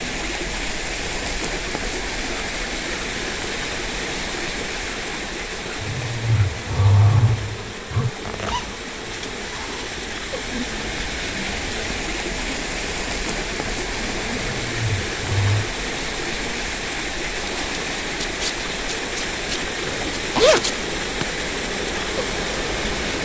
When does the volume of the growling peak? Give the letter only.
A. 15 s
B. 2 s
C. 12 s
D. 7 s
D.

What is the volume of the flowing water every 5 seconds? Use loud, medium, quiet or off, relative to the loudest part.
loud, medium, loud, loud, loud.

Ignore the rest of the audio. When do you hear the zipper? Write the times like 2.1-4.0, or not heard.
8.2-9.9, 19.9-20.6.